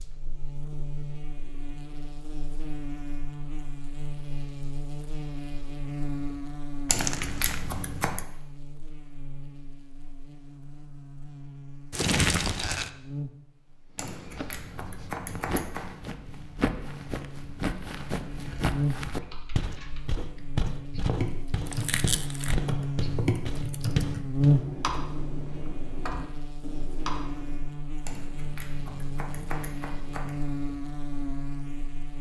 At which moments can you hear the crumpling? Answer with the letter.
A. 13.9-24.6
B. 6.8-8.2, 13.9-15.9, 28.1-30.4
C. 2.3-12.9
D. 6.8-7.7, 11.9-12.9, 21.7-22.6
D.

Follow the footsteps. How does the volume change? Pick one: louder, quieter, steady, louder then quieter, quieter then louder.
louder.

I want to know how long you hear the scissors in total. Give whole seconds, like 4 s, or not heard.
6 s.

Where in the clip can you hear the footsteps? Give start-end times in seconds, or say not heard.
13.9-24.6.